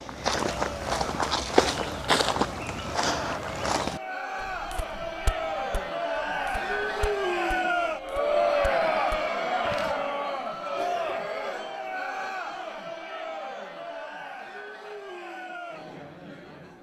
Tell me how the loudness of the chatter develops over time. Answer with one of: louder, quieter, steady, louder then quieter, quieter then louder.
louder then quieter.